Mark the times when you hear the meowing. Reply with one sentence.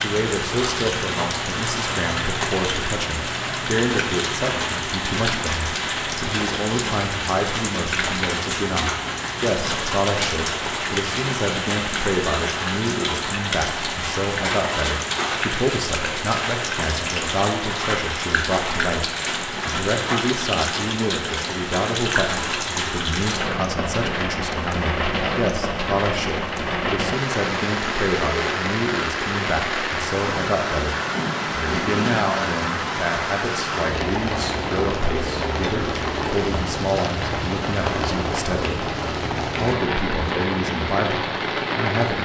You can't hear the meowing here.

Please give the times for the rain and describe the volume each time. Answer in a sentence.
You can hear the rain from 0.0 to 42.2 s, at a steady volume.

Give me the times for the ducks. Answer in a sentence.
You can't hear the ducks here.